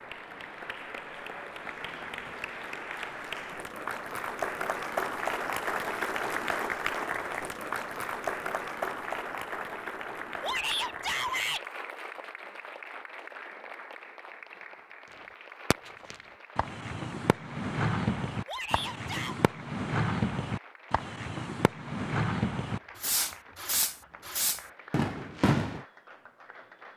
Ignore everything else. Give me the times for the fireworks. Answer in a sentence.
You can hear the fireworks from 15.1 to 25.9 s.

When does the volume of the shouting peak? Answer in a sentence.
The loudest moment of the shouting is at 11 seconds.